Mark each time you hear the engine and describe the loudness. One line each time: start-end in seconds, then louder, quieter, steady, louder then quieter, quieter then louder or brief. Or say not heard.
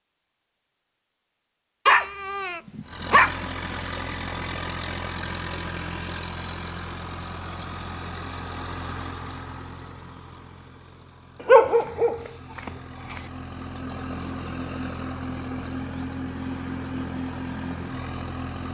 2.8-18.6 quieter then louder.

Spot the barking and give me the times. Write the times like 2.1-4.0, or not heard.
1.9-3.4, 11.4-13.2.